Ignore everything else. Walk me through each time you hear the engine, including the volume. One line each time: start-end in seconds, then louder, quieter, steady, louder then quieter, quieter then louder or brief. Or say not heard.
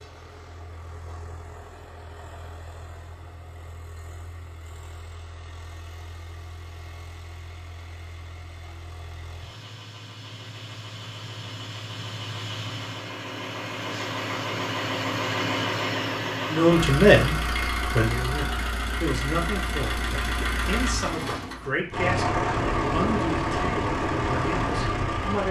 0.0-25.4 louder.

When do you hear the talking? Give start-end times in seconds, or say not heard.
16.5-25.4.